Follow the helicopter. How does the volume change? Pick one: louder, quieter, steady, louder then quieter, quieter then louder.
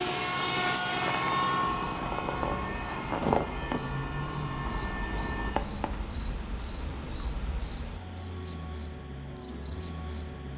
quieter.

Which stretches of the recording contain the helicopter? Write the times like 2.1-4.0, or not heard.
0.0-5.5.